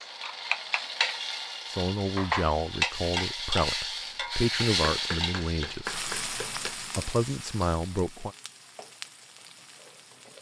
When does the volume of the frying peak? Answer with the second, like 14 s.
3 s.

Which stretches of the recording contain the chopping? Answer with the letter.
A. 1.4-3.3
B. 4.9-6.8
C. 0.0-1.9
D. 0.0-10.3
B.